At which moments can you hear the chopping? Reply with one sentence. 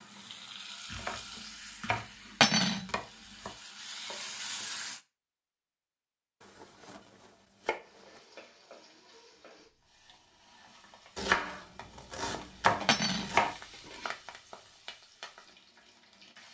The chopping can be heard from 0.8 to 3.5 s, from 6.4 to 8.2 s and from 11.2 to 13.6 s.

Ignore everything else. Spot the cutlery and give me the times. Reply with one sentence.
The cutlery can be heard from 2.4 to 2.9 s and from 12.8 to 13.3 s.